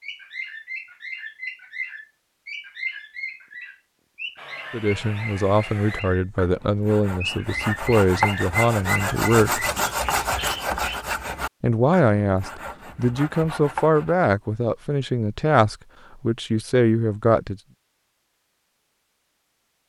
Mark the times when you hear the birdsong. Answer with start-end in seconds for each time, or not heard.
0.0-11.1.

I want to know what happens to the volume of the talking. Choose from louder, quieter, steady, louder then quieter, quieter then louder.
steady.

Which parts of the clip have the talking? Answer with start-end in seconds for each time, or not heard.
4.7-9.7, 11.6-17.6.